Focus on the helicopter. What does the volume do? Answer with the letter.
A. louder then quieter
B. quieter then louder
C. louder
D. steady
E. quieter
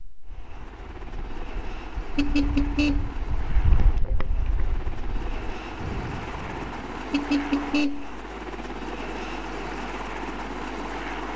C.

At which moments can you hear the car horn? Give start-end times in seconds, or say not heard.
2.1-3.2, 7.1-8.2.